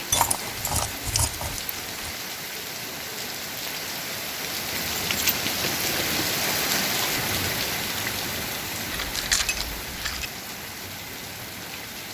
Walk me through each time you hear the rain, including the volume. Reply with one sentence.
The rain can be heard from 0.0 to 12.0 s, getting louder then quieter.